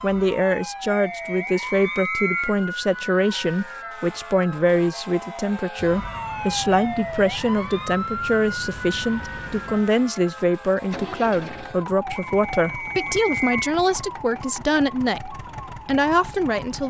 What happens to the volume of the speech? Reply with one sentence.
The loudness of the speech stays about the same.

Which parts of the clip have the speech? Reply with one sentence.
You can hear the speech from 0.0 to 16.8 s.